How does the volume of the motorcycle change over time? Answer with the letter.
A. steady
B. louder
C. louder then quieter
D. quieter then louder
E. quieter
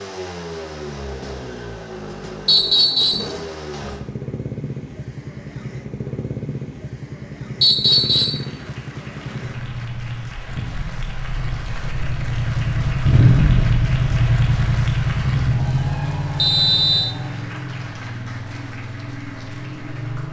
C.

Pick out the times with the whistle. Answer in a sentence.
The whistle can be heard from 2.5 to 3.3 s, from 7.6 to 8.4 s and from 16.4 to 17.1 s.